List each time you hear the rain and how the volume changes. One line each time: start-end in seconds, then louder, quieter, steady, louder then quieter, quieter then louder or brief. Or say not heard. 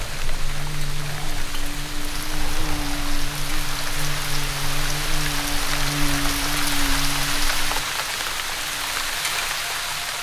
0.0-10.1 louder.